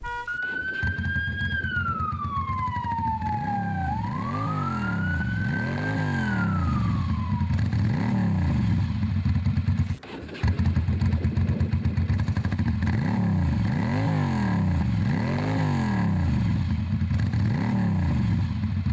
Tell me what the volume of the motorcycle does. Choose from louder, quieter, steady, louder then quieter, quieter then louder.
louder.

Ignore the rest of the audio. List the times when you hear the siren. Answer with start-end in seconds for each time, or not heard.
0.0-7.6.